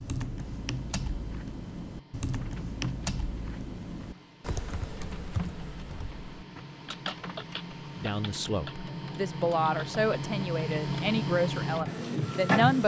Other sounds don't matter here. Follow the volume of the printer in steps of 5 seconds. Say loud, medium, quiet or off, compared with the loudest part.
quiet, medium, loud.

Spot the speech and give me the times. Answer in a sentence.
You can hear the speech from 8.0 to 12.8 s.